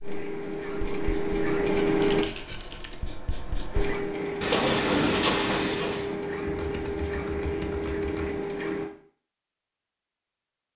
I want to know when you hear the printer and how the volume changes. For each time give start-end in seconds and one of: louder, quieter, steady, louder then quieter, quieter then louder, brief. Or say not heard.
0.0-2.2 brief
3.7-8.9 steady.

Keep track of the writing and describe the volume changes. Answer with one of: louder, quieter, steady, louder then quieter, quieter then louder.
louder.